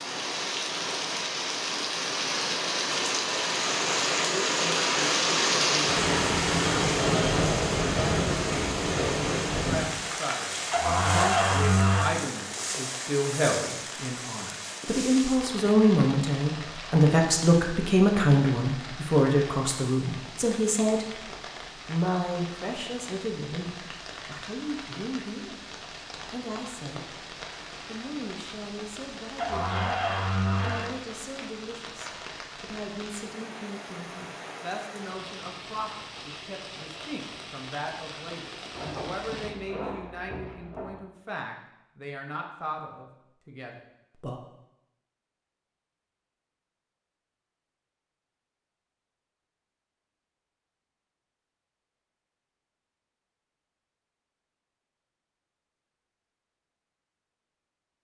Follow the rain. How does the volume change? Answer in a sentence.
The volume of the rain goes down.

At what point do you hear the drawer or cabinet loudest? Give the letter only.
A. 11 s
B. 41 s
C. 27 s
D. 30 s
A.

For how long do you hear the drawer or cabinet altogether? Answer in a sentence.
The drawer or cabinet can be heard for 5 seconds in total.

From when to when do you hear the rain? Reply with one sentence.
You can hear the rain from 0.0 to 39.5 s.